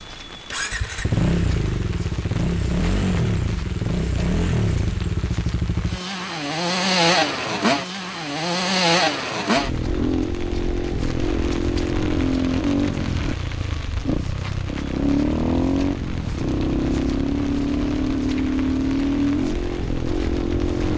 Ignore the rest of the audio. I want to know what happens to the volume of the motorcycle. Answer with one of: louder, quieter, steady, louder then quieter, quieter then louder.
steady.